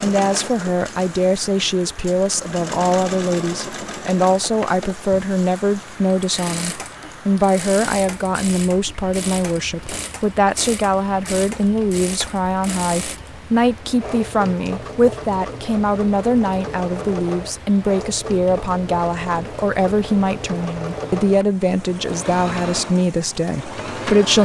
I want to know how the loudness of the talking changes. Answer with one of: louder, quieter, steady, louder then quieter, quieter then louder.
steady.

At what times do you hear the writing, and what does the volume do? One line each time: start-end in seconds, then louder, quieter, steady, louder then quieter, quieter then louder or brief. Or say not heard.
not heard.